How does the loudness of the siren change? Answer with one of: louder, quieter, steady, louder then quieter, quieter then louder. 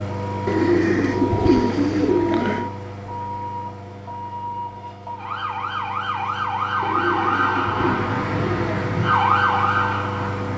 louder.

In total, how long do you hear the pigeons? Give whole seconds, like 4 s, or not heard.
4 s.